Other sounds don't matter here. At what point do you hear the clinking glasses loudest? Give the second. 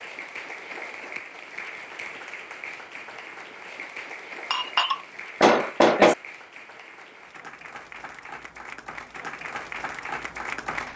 6 s.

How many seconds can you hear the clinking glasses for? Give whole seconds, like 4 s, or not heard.
2 s.